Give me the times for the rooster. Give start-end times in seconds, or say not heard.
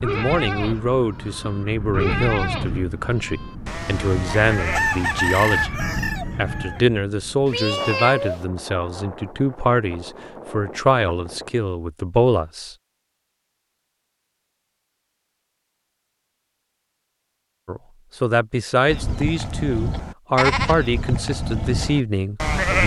4.3-6.8.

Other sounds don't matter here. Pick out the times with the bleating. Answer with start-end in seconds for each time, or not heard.
0.0-5.7, 18.9-22.8.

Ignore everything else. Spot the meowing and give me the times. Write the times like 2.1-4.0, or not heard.
7.5-8.4.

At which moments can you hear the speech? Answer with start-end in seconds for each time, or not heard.
0.0-12.8, 17.6-22.8.